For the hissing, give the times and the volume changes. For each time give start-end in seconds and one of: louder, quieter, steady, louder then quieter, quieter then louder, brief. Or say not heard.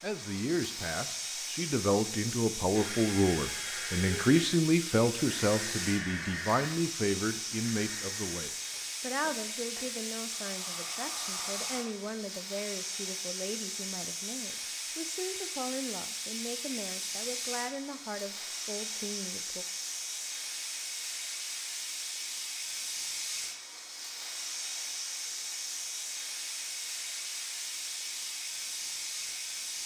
0.0-29.8 steady.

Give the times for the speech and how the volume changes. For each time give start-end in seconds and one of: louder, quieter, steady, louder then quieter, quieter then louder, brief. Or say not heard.
0.0-19.6 quieter.